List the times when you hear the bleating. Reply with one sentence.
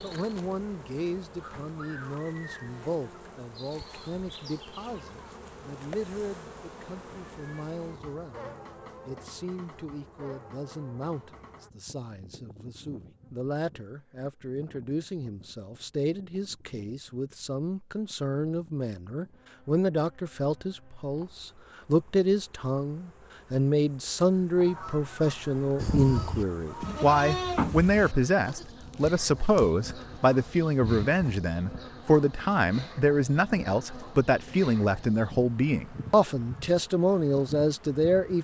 You can hear the bleating from 25.8 to 31.4 s.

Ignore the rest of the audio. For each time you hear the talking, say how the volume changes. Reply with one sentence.
You can hear the talking from 0.0 to 38.3 s, getting louder.